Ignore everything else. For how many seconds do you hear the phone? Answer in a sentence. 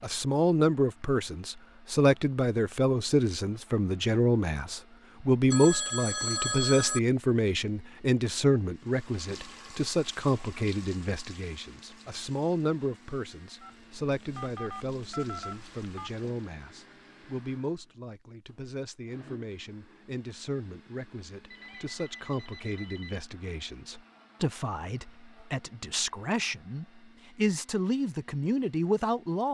You can hear the phone for 6 seconds altogether.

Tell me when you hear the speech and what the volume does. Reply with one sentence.
You can hear the speech from 0.0 to 29.4 s, getting quieter then louder.